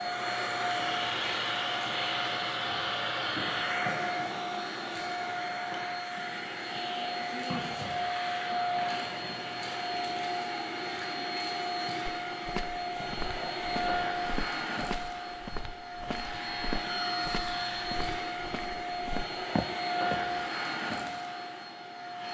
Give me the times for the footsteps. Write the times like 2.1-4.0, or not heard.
12.1-20.4.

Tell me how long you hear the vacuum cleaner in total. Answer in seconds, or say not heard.
22 s.